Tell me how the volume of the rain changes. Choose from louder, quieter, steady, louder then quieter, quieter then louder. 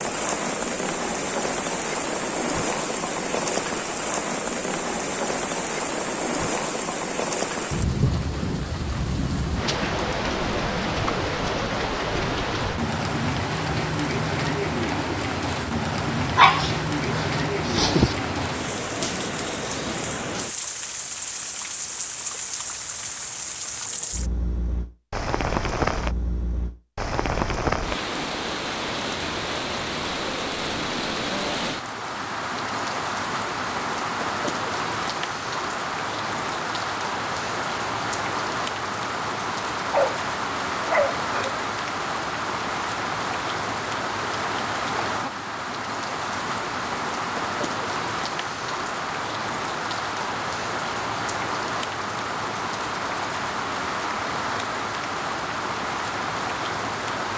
steady.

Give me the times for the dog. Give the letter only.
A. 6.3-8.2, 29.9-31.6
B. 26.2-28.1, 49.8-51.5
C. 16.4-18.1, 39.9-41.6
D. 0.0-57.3
C.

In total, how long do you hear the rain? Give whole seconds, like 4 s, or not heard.
57 s.